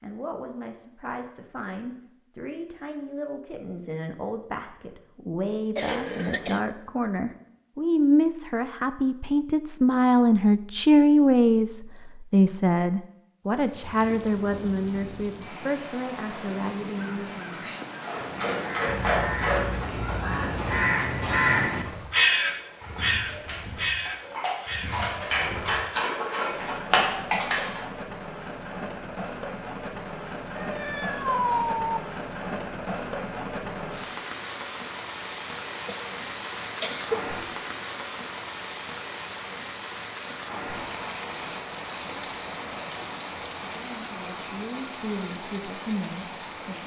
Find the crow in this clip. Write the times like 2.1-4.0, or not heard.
17.1-24.9.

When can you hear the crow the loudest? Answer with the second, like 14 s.
22 s.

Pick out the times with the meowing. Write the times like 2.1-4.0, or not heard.
18.9-20.9, 30.6-32.0.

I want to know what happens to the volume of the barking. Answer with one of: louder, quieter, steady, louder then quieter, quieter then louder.
quieter then louder.